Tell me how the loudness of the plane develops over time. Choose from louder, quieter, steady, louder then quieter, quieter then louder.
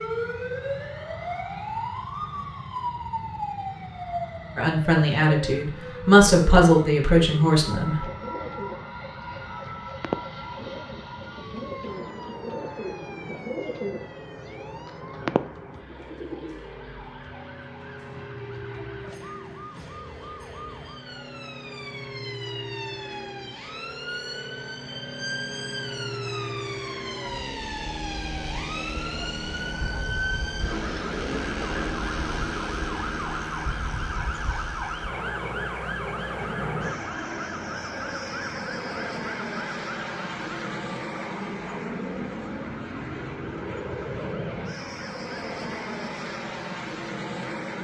louder.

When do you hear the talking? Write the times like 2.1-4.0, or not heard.
4.5-8.1.